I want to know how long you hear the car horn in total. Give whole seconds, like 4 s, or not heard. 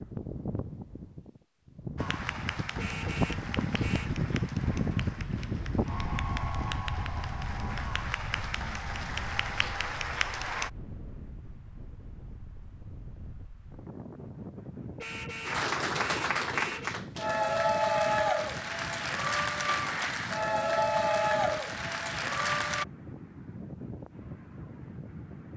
3 s.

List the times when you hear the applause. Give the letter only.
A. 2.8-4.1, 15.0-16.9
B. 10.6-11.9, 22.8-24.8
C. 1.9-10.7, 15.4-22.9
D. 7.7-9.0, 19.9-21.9
C.